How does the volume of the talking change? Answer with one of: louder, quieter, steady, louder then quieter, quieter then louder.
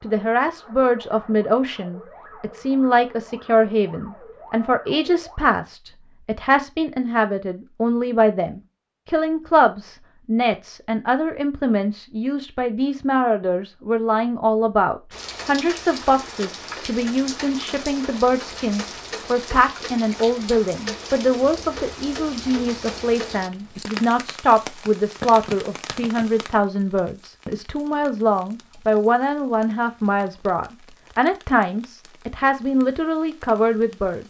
steady.